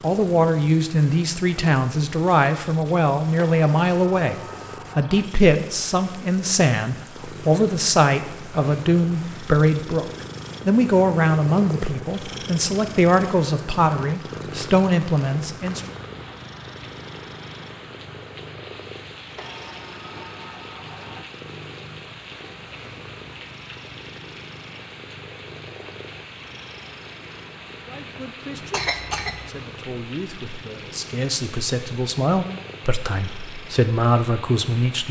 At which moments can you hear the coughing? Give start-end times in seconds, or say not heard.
28.7-29.5.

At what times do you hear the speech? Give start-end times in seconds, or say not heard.
0.0-15.8, 27.9-35.0.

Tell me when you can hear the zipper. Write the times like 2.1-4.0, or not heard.
not heard.